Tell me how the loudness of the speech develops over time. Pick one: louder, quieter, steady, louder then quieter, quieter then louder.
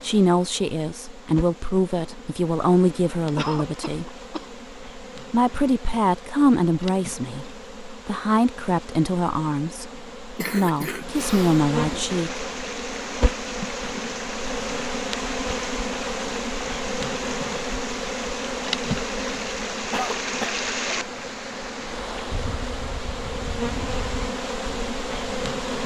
steady.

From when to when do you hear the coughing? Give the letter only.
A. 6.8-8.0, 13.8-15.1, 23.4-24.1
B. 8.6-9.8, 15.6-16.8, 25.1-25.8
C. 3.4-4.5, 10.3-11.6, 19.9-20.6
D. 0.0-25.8
C.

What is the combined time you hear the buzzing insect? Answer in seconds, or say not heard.
26 s.